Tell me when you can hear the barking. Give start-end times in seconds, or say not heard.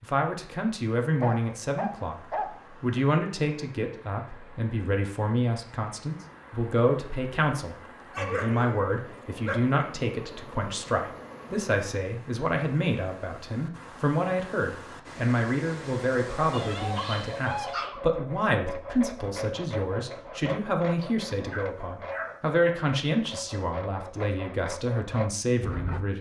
1.2-3.1, 8.1-9.8, 16.5-18.0, 21.0-22.4.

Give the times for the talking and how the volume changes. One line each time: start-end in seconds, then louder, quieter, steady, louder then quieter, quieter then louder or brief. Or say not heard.
0.0-26.1 steady.